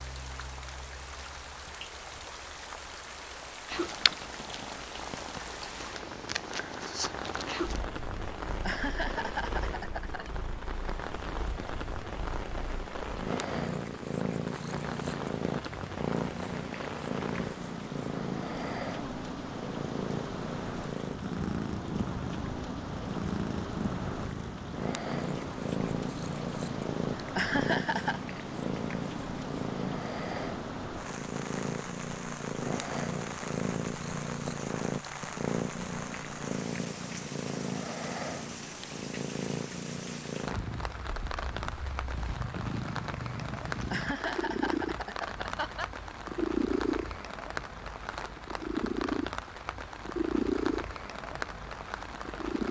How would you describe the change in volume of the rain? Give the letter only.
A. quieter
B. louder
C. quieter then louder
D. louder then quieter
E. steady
E.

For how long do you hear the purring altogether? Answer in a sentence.
You can hear the purring for 49 seconds altogether.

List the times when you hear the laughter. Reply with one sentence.
You can hear the laughter from 8.4 to 10.3 s, from 27.1 to 28.2 s and from 43.7 to 45.9 s.